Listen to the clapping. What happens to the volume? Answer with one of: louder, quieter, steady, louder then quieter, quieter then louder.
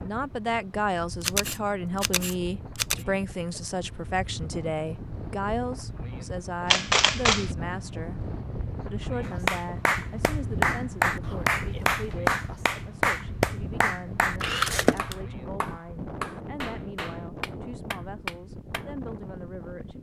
quieter.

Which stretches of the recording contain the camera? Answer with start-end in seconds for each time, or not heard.
1.2-3.0, 6.7-7.5, 14.4-15.2.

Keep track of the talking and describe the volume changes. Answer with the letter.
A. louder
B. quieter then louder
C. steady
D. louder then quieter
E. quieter
E.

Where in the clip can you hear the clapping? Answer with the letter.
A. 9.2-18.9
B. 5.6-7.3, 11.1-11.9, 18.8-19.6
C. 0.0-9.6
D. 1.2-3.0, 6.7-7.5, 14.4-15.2
A.